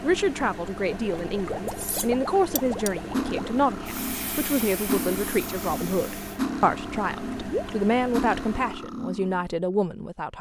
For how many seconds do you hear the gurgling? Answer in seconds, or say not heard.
3 s.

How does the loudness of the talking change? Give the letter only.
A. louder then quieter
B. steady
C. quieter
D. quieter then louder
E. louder
B.